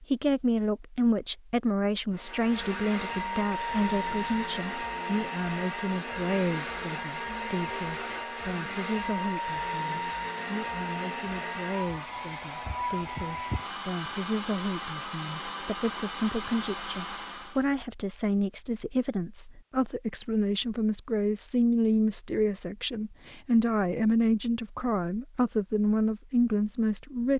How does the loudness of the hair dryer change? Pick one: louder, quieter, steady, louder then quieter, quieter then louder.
steady.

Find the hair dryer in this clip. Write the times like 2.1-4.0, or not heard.
2.1-17.6.